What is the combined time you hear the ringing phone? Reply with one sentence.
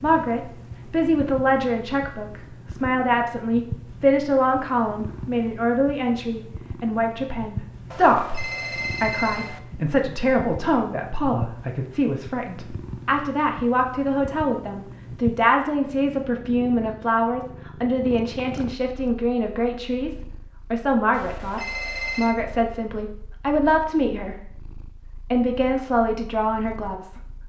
The ringing phone can be heard for 3 seconds in total.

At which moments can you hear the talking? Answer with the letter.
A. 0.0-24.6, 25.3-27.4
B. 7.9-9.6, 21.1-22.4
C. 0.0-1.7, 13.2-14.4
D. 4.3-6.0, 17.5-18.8
A.